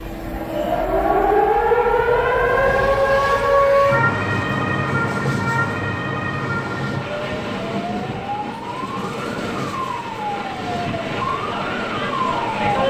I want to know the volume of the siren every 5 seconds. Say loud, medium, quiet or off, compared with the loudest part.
loud, medium, medium.